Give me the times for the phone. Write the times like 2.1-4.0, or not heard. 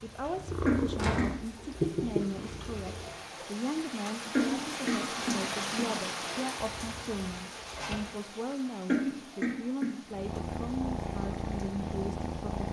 not heard.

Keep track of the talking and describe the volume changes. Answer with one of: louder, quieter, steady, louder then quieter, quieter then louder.
steady.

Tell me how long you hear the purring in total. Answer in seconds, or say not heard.
6 s.